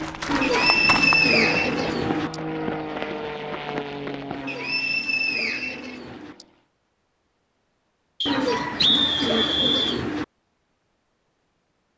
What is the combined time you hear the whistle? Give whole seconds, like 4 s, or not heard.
6 s.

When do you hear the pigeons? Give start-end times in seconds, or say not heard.
0.2-2.3, 4.3-6.3, 8.2-10.2.